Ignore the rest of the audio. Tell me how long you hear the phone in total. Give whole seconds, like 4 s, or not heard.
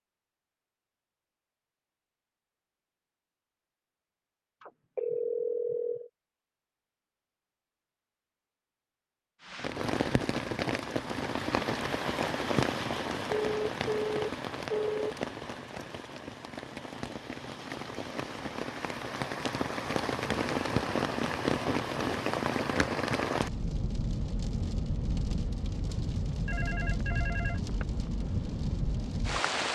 5 s.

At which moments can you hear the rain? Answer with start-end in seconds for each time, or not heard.
9.4-29.7.